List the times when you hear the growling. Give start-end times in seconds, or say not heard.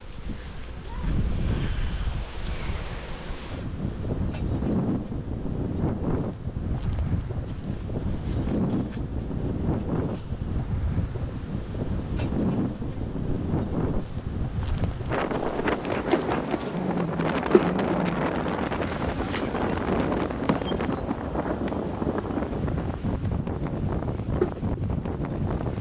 16.6-18.2.